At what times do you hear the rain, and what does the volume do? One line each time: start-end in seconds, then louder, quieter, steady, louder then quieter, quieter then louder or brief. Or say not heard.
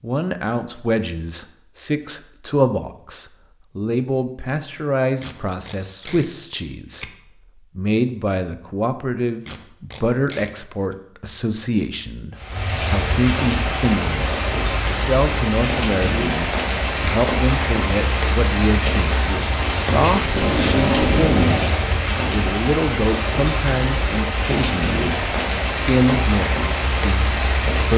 12.3-27.9 steady.